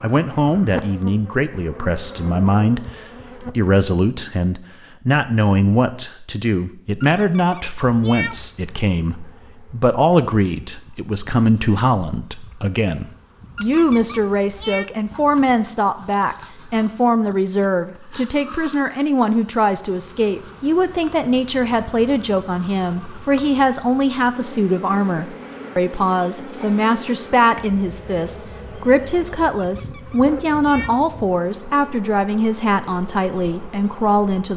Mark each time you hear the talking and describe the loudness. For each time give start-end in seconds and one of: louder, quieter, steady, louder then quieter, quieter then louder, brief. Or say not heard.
0.0-34.5 steady.